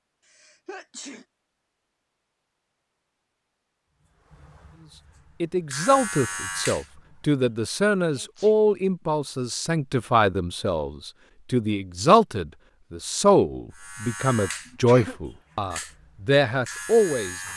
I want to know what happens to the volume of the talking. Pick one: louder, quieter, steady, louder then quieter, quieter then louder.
steady.